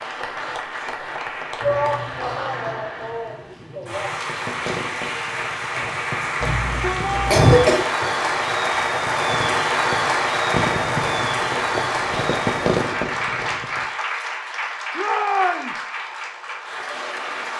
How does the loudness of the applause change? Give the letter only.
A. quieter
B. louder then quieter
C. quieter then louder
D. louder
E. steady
B.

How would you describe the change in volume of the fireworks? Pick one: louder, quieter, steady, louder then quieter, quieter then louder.
louder.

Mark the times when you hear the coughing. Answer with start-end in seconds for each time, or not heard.
6.4-7.8.